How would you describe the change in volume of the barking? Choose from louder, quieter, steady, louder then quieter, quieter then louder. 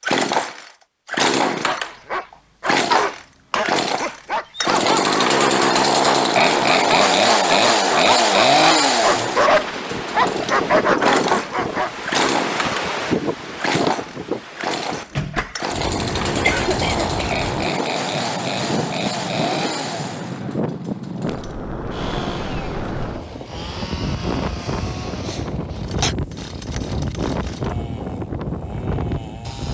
louder.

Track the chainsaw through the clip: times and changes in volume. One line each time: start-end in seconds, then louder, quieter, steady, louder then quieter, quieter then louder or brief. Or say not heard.
0.0-29.6 quieter.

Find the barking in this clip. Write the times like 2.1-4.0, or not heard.
1.4-12.1.